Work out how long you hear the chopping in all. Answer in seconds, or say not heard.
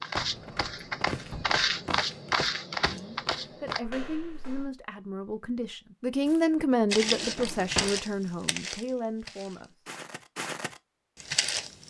not heard.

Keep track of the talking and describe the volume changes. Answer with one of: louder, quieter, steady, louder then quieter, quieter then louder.
louder then quieter.